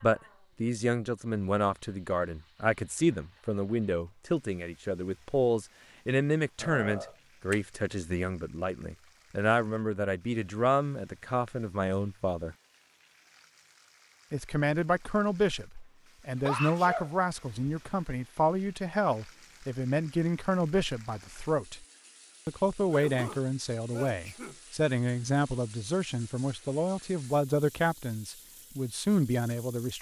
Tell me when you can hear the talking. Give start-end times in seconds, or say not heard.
0.0-12.6, 14.3-21.9, 22.4-29.9.